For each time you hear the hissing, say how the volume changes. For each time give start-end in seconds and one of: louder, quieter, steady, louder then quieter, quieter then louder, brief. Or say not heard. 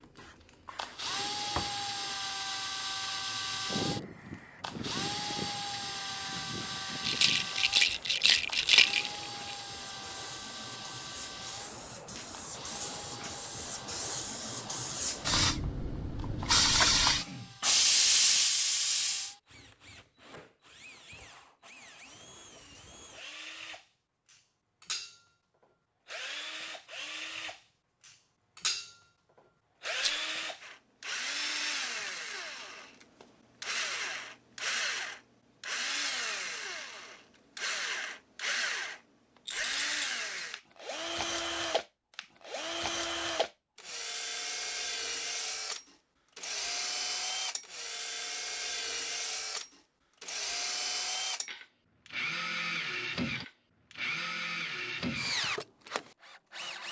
0.0-19.4 quieter then louder.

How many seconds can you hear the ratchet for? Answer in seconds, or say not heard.
not heard.